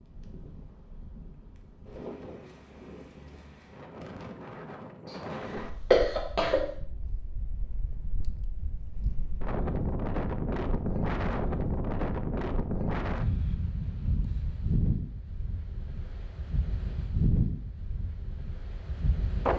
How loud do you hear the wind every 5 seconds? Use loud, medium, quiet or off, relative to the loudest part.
quiet, medium, loud, loud.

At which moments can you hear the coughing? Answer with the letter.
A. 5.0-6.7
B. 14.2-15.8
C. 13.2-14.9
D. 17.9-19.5
A.